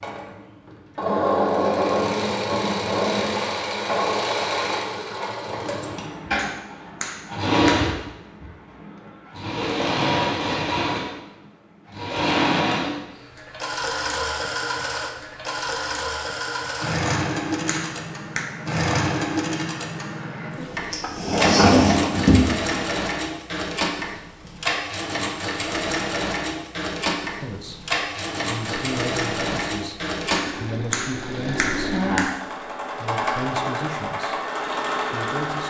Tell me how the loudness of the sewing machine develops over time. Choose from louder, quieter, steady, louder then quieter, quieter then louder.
steady.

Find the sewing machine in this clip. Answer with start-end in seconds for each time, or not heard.
0.0-35.6.